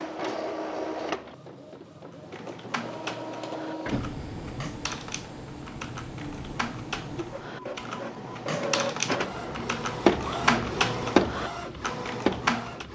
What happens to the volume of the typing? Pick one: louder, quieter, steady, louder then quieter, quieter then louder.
louder.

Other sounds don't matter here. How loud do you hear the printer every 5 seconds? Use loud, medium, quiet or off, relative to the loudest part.
medium, medium, loud.